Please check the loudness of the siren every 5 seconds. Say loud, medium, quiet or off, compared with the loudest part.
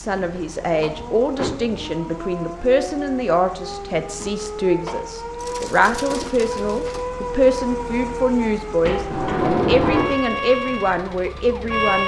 medium, loud, loud.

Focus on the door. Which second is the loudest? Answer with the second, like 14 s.
10 s.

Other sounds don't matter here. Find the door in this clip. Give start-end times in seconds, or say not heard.
0.1-1.8, 4.2-5.0, 8.8-10.2.